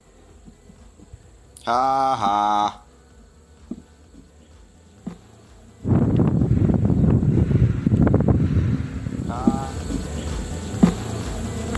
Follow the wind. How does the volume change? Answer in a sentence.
The volume of the wind goes down.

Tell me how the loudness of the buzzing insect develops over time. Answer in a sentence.
The loudness of the buzzing insect goes up.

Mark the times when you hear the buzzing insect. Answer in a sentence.
The buzzing insect can be heard from 0.0 to 11.7 s.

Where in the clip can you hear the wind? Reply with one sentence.
You can hear the wind from 5.8 to 11.7 s.